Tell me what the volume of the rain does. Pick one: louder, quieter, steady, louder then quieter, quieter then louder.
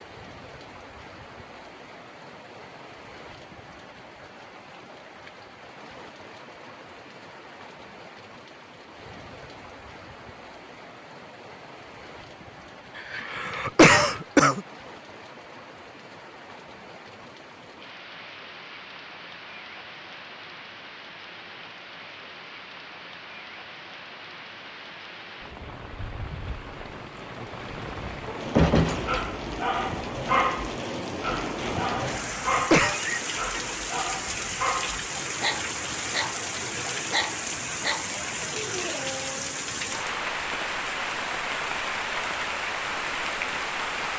louder.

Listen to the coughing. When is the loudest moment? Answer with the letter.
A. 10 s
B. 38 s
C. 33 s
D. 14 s
D.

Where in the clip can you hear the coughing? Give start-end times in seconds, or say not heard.
13.1-14.6, 32.0-33.0.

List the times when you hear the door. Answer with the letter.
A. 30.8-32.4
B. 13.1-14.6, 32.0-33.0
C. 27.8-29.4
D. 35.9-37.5
C.